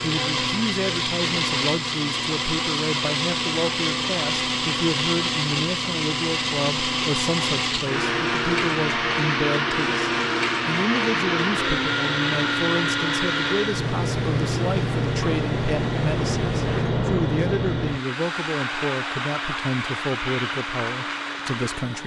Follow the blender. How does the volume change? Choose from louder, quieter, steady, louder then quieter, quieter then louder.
quieter.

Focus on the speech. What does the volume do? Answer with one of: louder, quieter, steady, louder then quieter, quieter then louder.
steady.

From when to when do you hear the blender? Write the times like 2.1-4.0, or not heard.
0.0-22.0.